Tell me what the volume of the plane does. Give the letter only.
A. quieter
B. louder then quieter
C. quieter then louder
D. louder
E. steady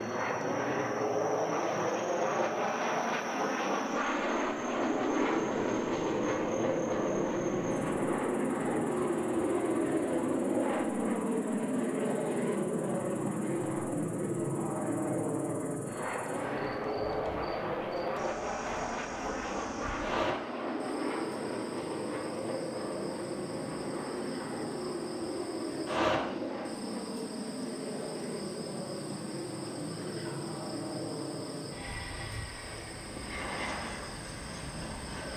A.